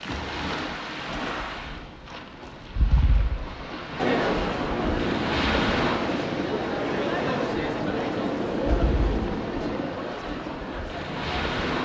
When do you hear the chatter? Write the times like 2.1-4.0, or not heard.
4.0-11.8.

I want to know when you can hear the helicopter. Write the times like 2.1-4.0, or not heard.
4.6-10.0.